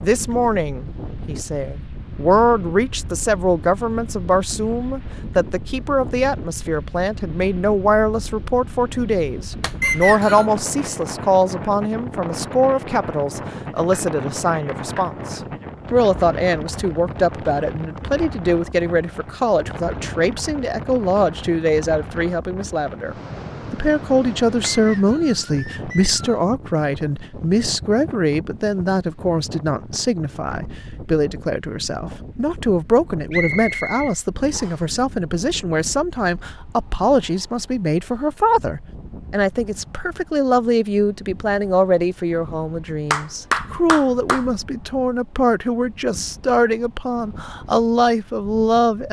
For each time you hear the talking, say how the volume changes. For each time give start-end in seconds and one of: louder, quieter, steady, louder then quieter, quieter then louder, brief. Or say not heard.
0.0-49.0 steady.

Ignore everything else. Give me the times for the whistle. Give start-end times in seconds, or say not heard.
9.8-10.4, 24.7-26.4, 33.3-34.8.